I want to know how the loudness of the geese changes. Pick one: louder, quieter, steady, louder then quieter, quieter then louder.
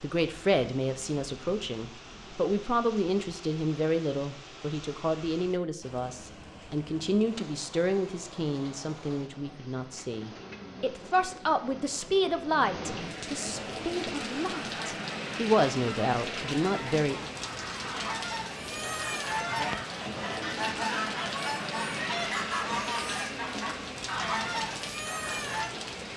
louder.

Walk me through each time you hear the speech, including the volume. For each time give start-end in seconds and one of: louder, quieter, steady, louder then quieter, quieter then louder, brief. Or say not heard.
0.0-17.3 steady.